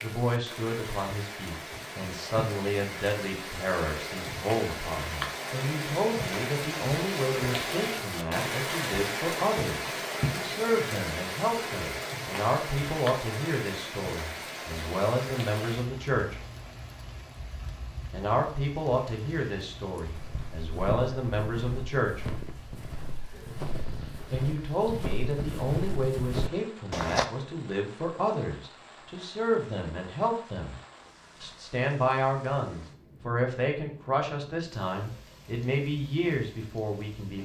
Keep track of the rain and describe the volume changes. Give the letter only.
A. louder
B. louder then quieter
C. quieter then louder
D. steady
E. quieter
E.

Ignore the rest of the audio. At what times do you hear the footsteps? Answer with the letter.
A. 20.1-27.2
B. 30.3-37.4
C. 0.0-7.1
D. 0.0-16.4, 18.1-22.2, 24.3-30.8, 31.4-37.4
A.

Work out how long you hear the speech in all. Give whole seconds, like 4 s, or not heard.
33 s.